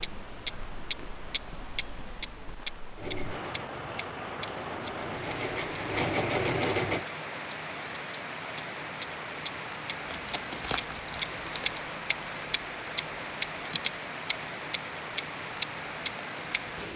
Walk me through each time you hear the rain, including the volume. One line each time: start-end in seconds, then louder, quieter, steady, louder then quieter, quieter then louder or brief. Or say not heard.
0.0-16.9 louder.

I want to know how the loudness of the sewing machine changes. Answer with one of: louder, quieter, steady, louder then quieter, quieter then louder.
louder.